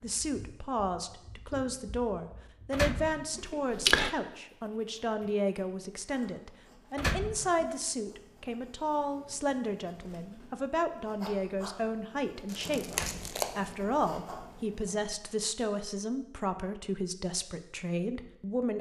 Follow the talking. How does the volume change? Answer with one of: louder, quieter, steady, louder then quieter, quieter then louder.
steady.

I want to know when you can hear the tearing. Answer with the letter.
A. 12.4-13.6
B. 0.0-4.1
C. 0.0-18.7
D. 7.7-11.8
A.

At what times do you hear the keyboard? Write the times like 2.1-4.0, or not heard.
0.0-4.1.